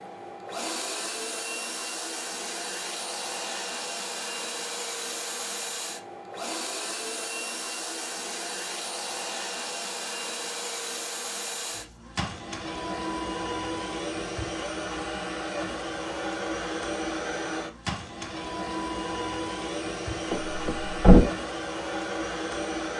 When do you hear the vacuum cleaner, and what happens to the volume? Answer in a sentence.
The vacuum cleaner can be heard from 0.0 to 22.9 s, at a steady volume.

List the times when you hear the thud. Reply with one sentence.
The thud can be heard from 20.3 to 21.2 s.